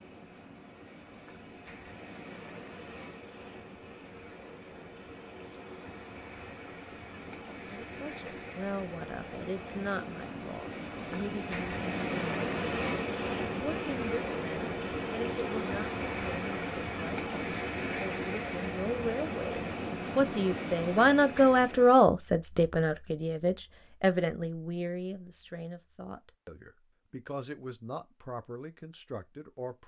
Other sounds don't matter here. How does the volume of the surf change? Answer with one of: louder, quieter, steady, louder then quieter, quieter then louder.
louder.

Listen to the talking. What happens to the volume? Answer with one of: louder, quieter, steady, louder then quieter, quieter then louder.
louder then quieter.